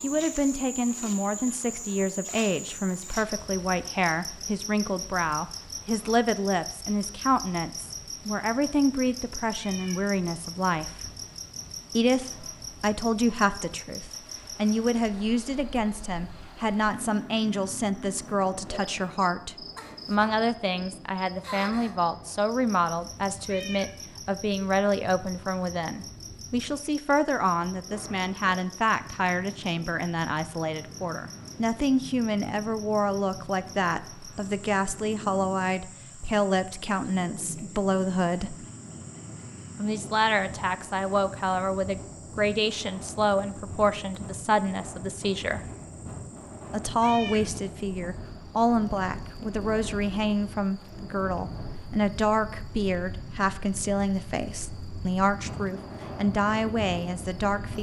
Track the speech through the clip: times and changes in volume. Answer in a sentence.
The speech can be heard from 0.0 to 10.9 s, at a steady volume; from 11.9 to 38.5 s, at a steady volume; from 39.8 to 45.6 s, at a steady volume; and from 46.7 to 57.7 s, at a steady volume.